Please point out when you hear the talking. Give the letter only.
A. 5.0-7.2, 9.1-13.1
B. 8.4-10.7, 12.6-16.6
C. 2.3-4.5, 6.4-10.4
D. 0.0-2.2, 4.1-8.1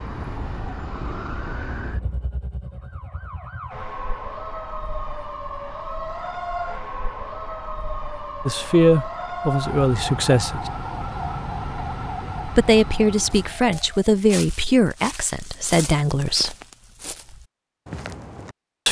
B.